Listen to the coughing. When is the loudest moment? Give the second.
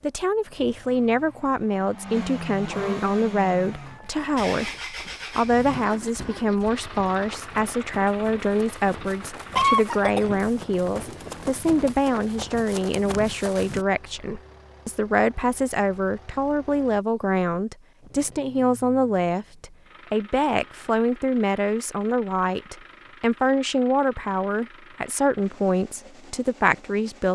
10 s.